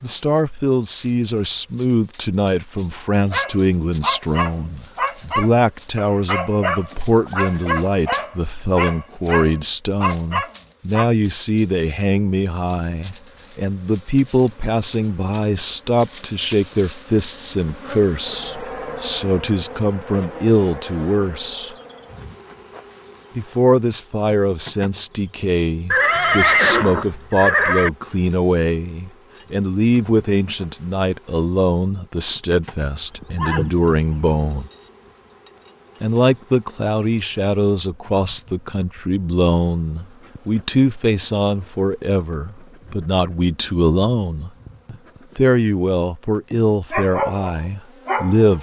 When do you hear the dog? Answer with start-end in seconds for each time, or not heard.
3.3-11.1, 46.9-48.5.